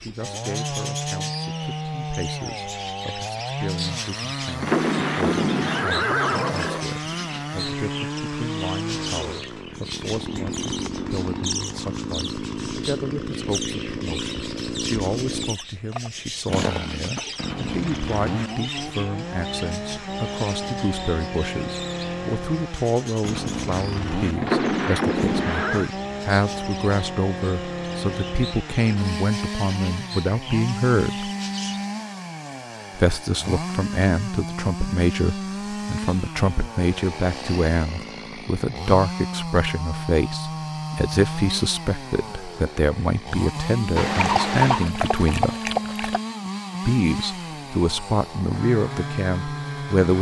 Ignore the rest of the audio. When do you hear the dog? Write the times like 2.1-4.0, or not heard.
44.2-46.2.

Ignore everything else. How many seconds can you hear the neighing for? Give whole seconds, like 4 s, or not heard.
5 s.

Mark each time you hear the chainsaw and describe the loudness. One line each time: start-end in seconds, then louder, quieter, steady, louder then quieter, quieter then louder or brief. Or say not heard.
0.0-50.1 steady.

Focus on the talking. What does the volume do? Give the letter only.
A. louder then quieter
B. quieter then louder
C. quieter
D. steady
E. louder
E.